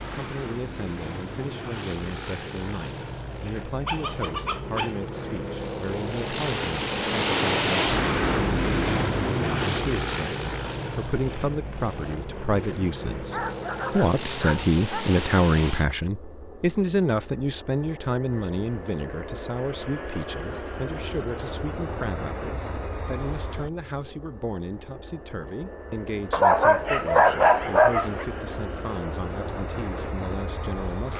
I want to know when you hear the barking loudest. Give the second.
27 s.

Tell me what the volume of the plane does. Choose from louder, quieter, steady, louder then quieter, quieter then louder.
louder then quieter.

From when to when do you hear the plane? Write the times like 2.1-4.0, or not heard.
0.0-31.1.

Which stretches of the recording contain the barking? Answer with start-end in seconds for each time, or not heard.
3.9-5.5, 13.3-15.2, 26.3-28.2.